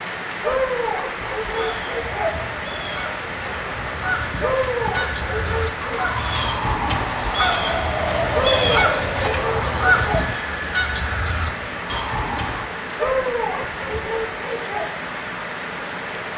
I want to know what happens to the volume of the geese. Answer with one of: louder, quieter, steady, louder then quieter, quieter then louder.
louder then quieter.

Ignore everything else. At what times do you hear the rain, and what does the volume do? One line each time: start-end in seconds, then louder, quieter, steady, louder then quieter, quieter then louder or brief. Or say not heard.
0.0-16.3 steady.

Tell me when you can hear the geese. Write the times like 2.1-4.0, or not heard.
1.1-12.7.